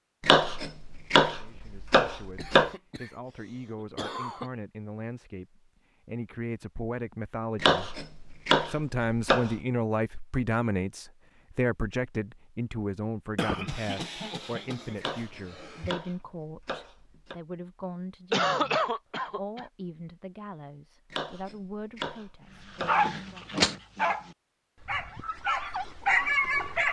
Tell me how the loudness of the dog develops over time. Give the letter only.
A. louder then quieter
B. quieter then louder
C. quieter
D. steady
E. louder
B.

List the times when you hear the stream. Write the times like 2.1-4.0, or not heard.
not heard.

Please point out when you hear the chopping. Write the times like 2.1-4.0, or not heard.
0.2-2.7, 7.5-9.6, 14.9-17.4, 21.1-23.0.